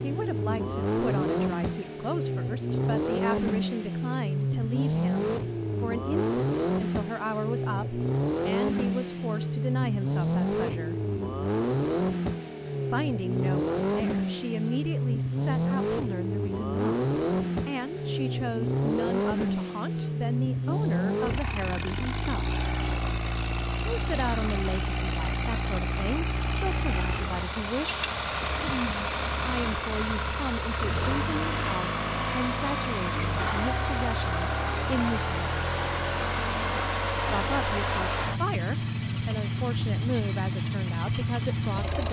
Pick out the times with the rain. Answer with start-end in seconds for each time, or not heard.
not heard.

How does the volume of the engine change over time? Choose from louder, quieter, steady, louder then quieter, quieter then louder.
steady.